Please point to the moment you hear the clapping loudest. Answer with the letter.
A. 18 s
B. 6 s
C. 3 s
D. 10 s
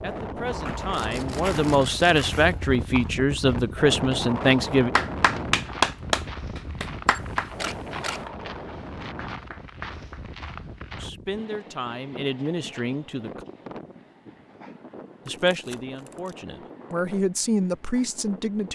B.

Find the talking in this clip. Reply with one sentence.
The talking can be heard from 0.0 to 4.9 s, from 11.0 to 13.4 s and from 15.2 to 18.7 s.